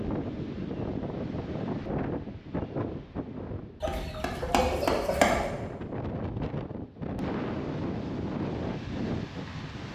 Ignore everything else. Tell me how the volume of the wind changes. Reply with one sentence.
The volume of the wind goes down, then up.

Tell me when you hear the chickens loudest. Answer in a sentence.
The loudest moment of the chickens is at 5 seconds.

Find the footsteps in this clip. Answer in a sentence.
You can't hear the footsteps here.